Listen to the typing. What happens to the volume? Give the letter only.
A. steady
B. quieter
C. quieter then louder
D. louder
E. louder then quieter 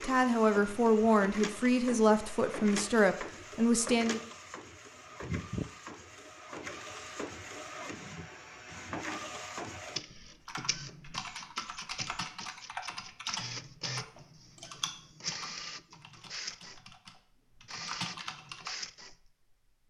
C.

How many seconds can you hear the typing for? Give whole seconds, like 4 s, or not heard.
8 s.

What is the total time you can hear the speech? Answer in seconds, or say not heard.
4 s.